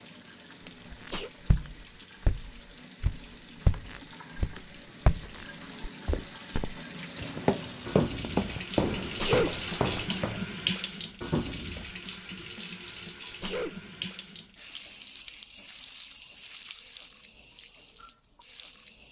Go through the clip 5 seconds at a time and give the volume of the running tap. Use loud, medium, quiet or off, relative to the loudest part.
medium, loud, loud, medium.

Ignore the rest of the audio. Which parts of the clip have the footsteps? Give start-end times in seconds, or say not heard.
0.9-10.4.